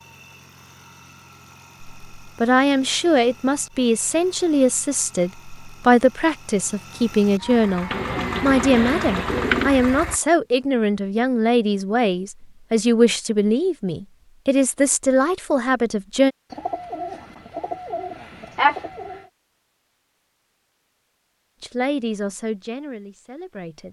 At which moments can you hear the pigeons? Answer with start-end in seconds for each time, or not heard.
7.9-9.7, 16.5-19.2.